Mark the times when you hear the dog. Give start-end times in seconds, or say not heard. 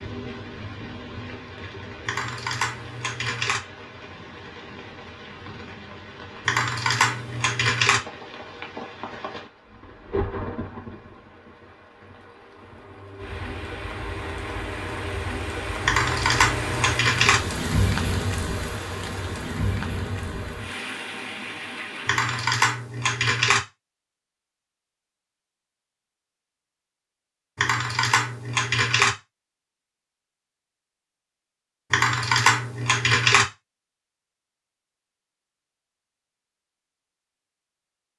not heard.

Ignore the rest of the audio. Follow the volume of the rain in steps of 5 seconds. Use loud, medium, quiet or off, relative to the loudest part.
medium, medium, medium, loud, medium, off, off, off.